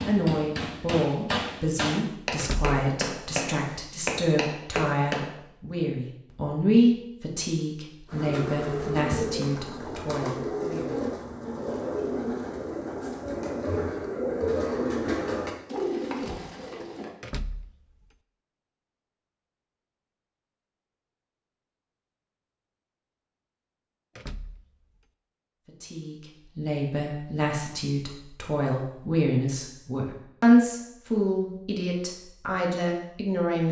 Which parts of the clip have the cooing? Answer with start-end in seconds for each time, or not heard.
8.1-17.1.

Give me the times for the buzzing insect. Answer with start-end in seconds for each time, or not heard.
not heard.